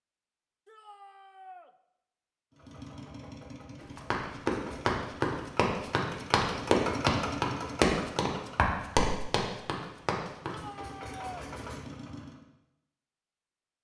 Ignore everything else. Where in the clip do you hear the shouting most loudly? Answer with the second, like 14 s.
11 s.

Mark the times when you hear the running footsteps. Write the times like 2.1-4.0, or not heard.
3.8-10.6.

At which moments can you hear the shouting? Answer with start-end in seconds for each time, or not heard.
0.7-1.7, 10.5-11.5.